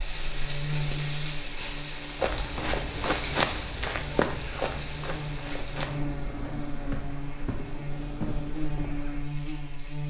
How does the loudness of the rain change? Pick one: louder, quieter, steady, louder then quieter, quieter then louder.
quieter.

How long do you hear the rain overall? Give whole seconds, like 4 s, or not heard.
10 s.